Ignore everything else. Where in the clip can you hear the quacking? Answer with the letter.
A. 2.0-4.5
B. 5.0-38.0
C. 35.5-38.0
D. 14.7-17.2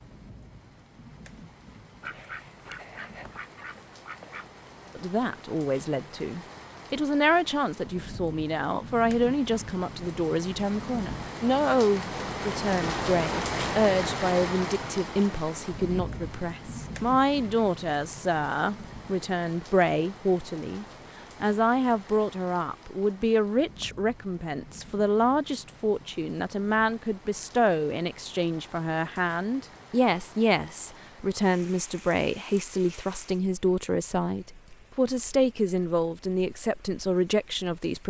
A.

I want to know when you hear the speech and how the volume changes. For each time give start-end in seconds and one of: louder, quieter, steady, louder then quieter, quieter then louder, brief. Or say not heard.
5.0-38.0 steady.